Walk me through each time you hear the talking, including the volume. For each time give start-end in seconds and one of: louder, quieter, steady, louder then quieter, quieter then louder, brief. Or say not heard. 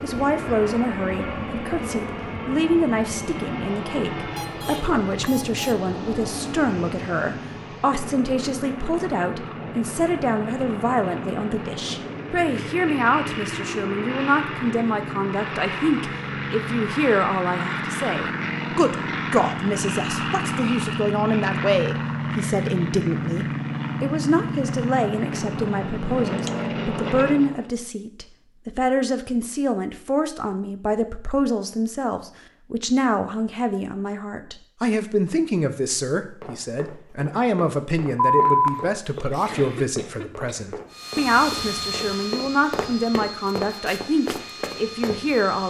0.0-45.6 steady.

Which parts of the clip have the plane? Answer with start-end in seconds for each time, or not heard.
0.0-27.7, 40.9-45.6.